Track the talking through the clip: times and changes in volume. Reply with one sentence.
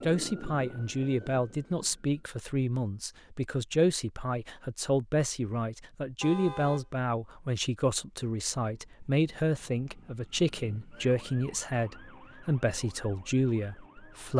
The talking can be heard from 0.0 to 14.3 s, at a steady volume.